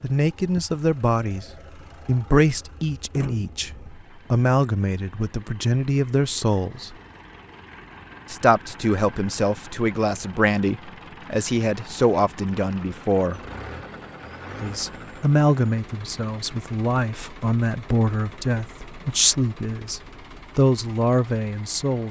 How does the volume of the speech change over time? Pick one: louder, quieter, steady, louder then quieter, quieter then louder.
steady.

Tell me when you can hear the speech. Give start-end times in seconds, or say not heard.
0.0-7.0, 8.3-13.4, 14.6-22.0.